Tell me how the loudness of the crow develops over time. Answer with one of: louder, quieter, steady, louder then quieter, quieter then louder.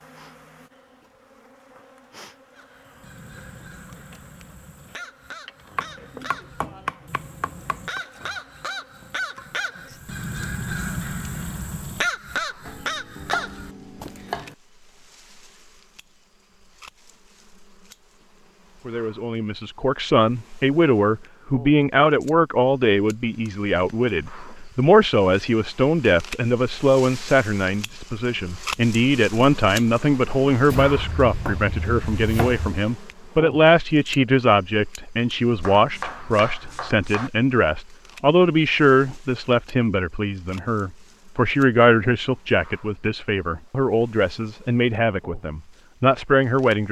louder.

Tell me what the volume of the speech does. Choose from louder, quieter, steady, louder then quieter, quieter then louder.
steady.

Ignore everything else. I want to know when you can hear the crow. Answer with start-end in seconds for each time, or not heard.
2.5-14.4.